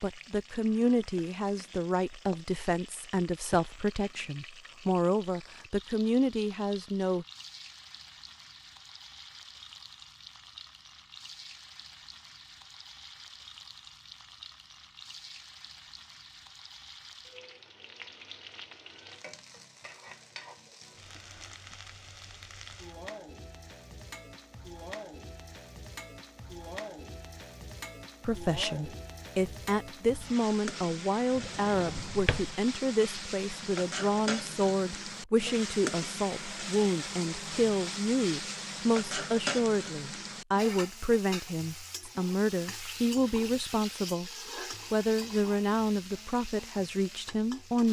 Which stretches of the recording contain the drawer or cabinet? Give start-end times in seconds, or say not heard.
31.4-32.5.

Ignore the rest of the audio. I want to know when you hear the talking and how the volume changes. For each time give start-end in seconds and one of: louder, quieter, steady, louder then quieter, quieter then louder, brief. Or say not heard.
0.0-7.2 steady
28.2-44.3 steady
44.9-47.8 brief.